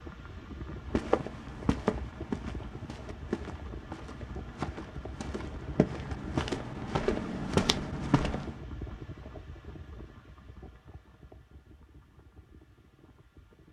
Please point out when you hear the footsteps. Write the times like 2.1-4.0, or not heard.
0.9-8.6.